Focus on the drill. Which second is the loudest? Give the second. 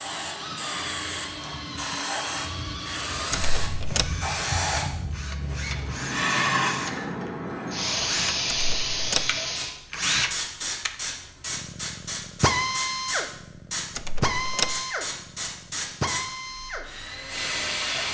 13 s.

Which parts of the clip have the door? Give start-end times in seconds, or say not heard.
3.3-4.1, 8.4-9.3, 13.9-14.8.